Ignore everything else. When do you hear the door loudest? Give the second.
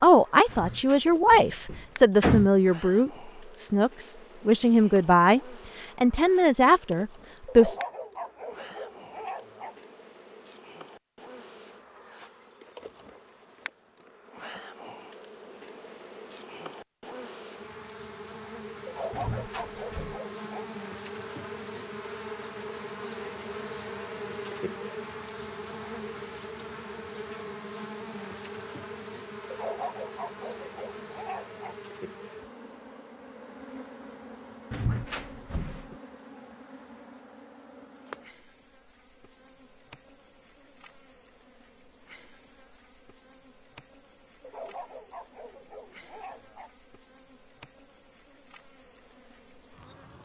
2 s.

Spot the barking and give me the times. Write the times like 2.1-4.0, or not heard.
7.5-9.8, 18.9-20.6, 29.5-31.8, 44.4-46.7.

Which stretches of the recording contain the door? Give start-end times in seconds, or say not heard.
0.5-2.5, 19.1-20.2, 34.7-36.0.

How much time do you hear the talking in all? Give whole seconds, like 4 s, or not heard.
8 s.